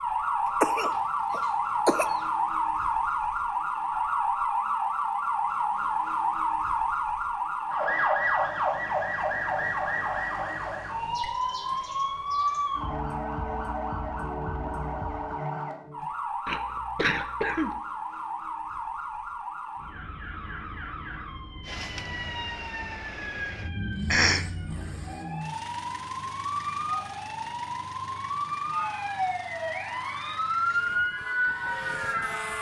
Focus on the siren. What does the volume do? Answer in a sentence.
The loudness of the siren goes down, then up.